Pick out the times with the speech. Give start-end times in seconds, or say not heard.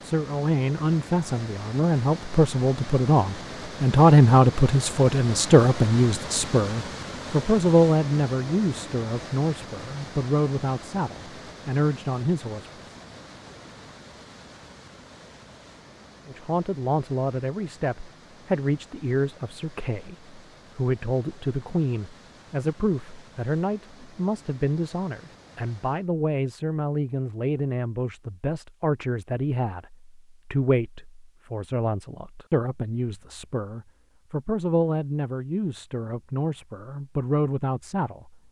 0.0-12.7, 16.2-38.4.